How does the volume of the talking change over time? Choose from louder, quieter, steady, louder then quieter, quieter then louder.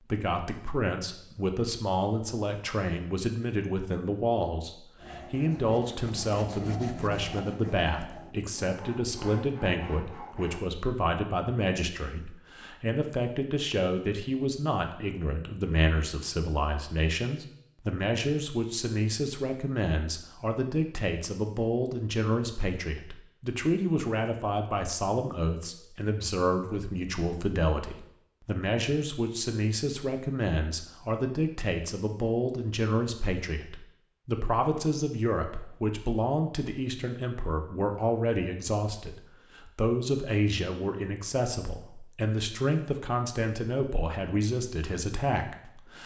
steady.